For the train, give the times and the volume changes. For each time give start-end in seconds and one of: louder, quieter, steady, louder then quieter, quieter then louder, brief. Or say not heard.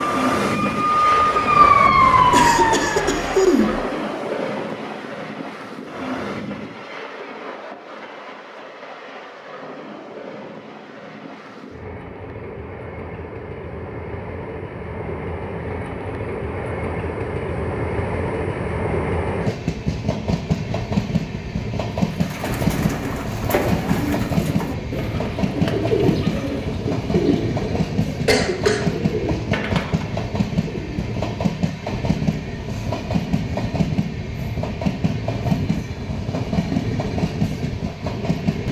0.0-38.6 quieter then louder.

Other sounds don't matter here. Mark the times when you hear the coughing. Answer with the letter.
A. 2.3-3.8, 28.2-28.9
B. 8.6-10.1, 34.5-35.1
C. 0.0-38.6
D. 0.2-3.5
A.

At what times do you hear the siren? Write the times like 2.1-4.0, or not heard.
0.2-3.5.